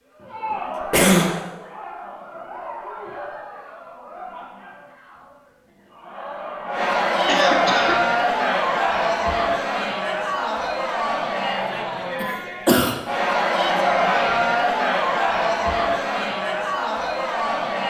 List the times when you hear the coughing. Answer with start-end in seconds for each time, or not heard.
0.5-1.4, 7.2-8.0, 12.2-12.9.